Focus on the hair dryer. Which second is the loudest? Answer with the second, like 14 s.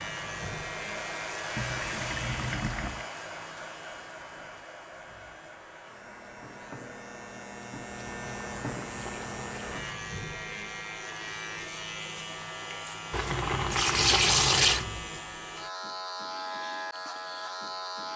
2 s.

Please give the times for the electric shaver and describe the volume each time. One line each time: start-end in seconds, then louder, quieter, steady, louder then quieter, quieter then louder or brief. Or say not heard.
0.0-18.1 quieter then louder.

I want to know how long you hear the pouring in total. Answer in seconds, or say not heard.
5 s.